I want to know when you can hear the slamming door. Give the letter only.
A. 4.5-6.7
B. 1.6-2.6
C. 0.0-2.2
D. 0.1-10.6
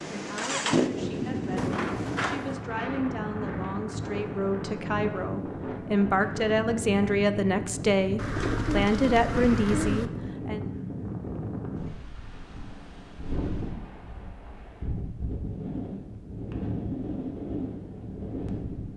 B.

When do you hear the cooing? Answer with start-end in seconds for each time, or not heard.
8.2-10.1.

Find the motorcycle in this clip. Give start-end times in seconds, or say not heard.
0.0-2.2.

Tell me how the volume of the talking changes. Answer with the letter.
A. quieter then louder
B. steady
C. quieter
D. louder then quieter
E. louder
E.